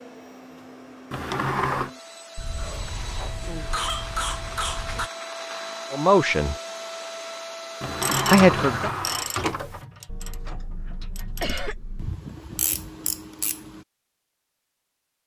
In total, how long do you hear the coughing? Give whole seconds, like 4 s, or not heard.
5 s.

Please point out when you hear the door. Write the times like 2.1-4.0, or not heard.
1.1-1.9, 7.8-9.8.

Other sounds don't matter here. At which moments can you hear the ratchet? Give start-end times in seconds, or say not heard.
8.0-13.8.